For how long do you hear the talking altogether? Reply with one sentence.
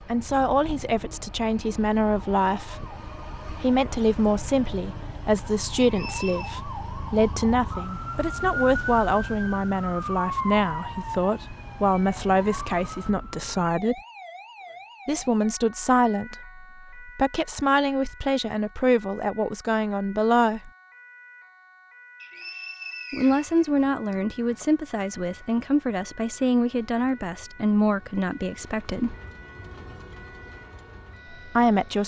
The talking can be heard for 26 seconds in total.